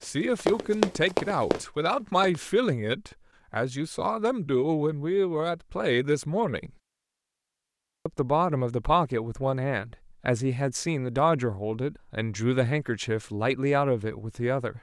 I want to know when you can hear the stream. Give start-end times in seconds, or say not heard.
not heard.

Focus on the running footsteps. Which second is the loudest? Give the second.
1 s.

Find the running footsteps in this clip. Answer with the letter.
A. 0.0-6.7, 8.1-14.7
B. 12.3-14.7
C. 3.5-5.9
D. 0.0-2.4
D.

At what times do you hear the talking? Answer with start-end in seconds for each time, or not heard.
0.0-6.7, 8.1-14.7.